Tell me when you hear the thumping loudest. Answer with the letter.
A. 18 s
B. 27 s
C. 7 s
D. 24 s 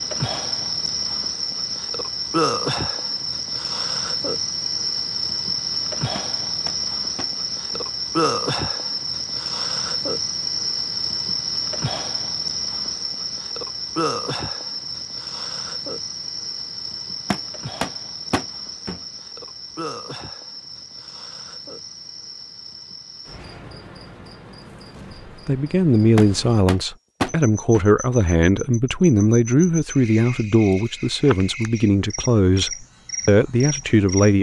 B.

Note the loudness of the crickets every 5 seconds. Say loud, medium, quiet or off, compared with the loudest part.
loud, loud, loud, medium, quiet, quiet, medium.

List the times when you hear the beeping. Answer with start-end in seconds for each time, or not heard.
not heard.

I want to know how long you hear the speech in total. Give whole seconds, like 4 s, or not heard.
9 s.